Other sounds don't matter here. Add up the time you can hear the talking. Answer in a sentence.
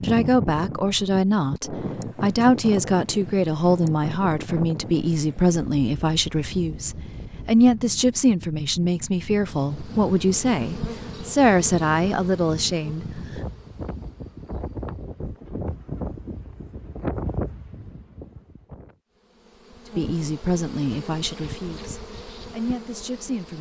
The talking can be heard for 17 seconds in total.